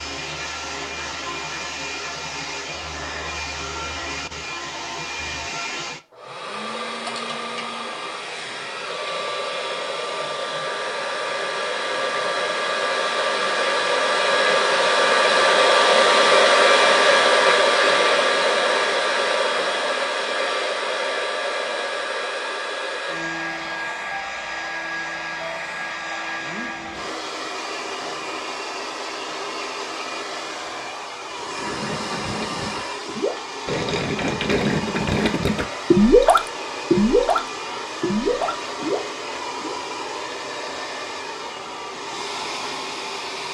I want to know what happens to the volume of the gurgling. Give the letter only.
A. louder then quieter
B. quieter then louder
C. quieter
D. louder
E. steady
A.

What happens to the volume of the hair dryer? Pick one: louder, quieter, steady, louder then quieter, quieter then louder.
louder then quieter.